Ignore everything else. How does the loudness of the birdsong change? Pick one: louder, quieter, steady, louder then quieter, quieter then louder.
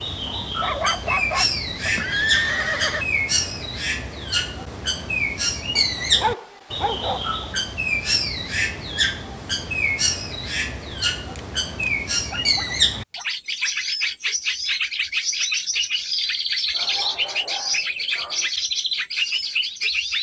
steady.